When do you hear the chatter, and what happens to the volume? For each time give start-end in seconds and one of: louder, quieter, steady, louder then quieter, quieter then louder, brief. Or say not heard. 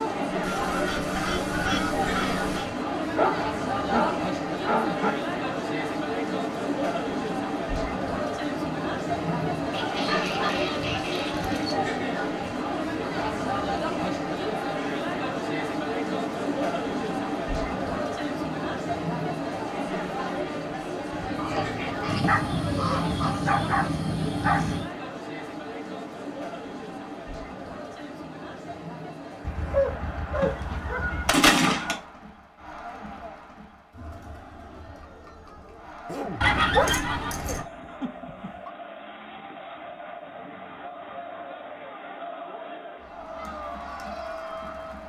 0.0-45.0 quieter.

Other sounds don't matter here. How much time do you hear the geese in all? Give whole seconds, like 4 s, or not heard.
9 s.